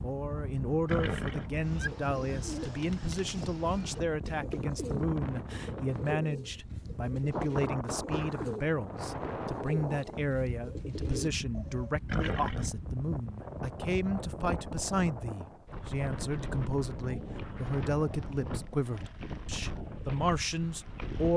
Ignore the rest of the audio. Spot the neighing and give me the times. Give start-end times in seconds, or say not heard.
0.8-1.9, 12.1-12.8.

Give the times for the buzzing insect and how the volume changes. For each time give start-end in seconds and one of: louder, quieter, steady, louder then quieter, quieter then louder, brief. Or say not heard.
not heard.